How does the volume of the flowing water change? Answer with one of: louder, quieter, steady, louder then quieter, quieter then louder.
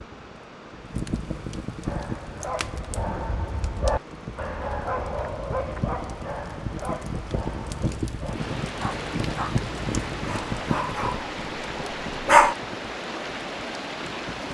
louder.